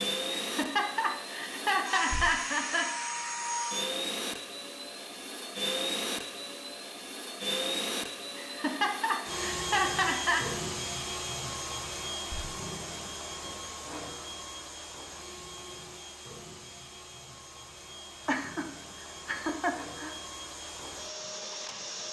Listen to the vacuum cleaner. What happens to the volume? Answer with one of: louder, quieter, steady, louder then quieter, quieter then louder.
quieter.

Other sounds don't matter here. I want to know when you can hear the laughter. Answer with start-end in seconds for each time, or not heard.
0.3-2.9, 8.3-10.4, 18.2-20.1.